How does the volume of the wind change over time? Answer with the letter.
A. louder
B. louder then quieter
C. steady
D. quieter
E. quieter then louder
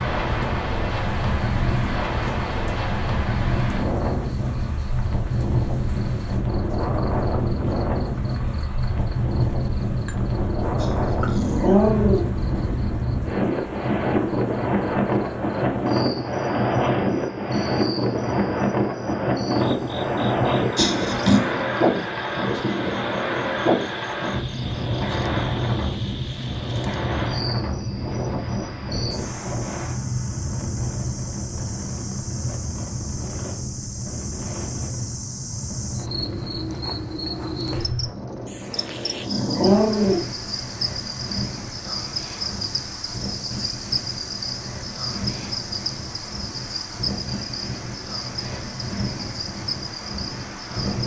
D.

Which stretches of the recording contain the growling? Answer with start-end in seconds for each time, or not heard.
10.8-12.3, 20.8-21.4, 38.8-40.2.